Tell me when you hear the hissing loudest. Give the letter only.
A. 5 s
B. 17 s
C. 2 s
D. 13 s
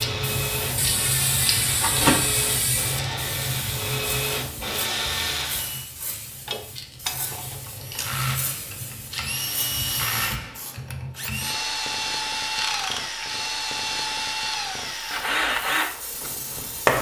C.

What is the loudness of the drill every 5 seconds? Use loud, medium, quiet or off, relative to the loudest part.
medium, medium, medium, loud.